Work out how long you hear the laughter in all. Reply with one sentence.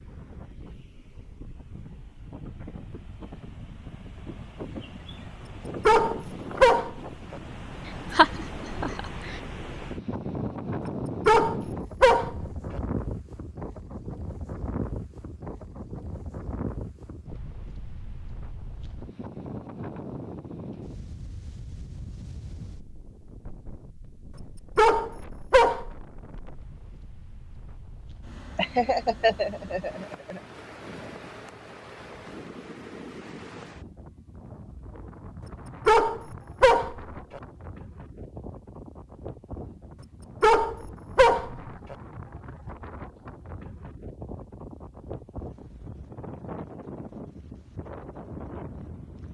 You can hear the laughter for 3 seconds altogether.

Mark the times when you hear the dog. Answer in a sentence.
You can hear the dog from 5.8 to 7.4 s, from 11.2 to 12.8 s, from 24.8 to 25.9 s, from 35.9 to 37.4 s and from 40.4 to 42.0 s.